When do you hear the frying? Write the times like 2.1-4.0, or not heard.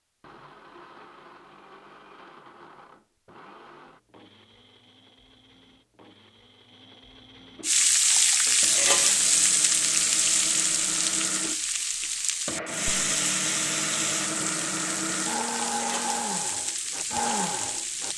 7.6-18.1.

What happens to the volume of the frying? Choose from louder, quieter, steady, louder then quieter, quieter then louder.
quieter.